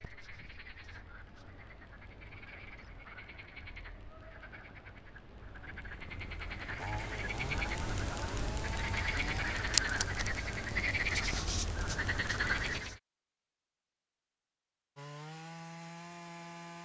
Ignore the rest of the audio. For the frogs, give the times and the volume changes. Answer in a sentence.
You can hear the frogs from 0.0 to 13.0 s, getting louder.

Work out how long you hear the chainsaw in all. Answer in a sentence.
The chainsaw can be heard for 5 seconds in total.